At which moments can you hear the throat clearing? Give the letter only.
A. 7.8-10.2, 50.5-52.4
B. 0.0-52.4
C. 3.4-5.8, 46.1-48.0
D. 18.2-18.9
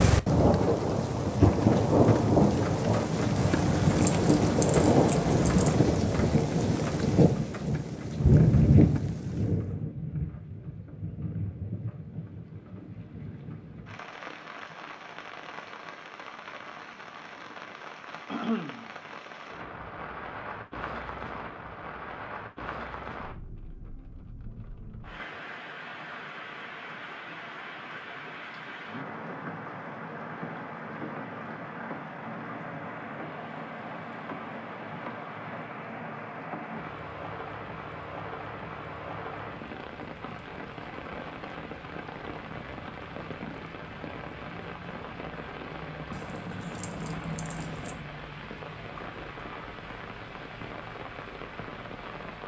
D.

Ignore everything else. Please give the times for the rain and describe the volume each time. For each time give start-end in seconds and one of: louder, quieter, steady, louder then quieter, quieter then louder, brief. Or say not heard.
0.0-52.4 quieter.